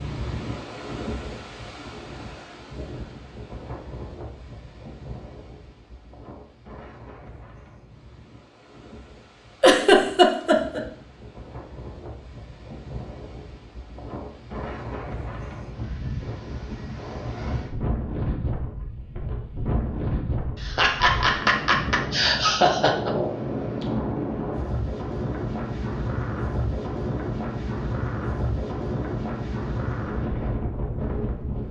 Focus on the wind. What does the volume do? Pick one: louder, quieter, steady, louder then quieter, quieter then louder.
quieter then louder.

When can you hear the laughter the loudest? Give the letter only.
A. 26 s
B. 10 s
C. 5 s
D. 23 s
B.